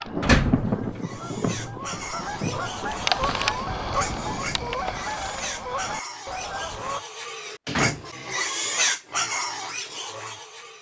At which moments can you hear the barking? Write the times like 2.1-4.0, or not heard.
not heard.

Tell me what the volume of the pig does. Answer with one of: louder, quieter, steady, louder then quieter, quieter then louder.
louder.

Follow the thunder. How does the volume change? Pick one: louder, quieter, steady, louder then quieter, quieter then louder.
quieter.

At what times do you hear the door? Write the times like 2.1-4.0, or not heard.
0.2-0.9, 7.7-8.1.